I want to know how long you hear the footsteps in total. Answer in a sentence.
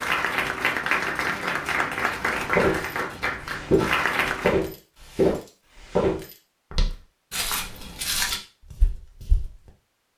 You can hear the footsteps for 7 seconds altogether.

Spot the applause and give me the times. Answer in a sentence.
You can hear the applause from 0.0 to 4.6 s.